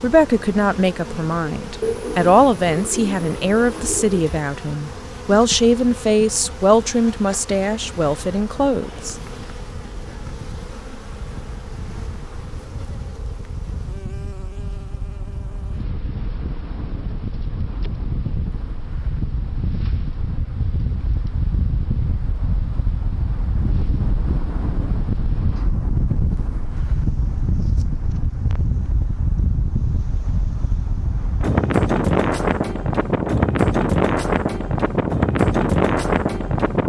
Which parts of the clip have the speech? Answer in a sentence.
You can hear the speech from 0.0 to 9.2 s.